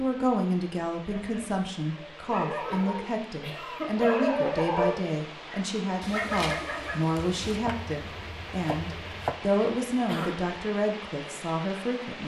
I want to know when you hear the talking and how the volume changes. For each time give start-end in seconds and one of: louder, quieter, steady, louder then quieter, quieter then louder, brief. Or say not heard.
0.0-12.2 steady.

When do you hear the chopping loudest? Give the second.
9 s.